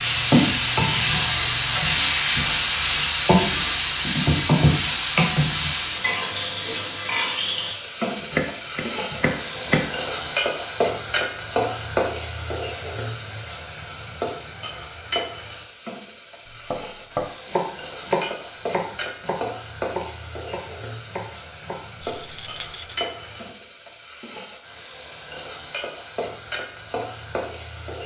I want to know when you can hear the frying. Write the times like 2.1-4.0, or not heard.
0.0-28.0.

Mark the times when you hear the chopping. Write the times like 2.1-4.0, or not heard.
8.3-9.9, 16.4-21.8.